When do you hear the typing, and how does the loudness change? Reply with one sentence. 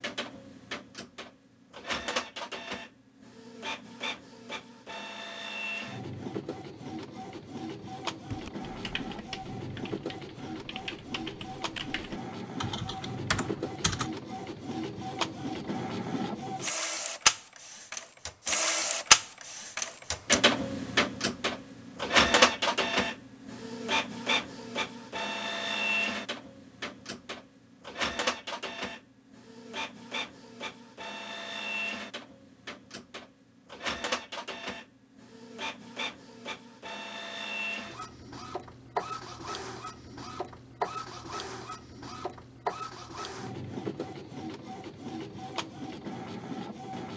You can hear the typing from 8.3 to 14.1 s, getting quieter then louder.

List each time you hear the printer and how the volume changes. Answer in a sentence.
You can hear the printer from 0.0 to 47.1 s, getting louder then quieter.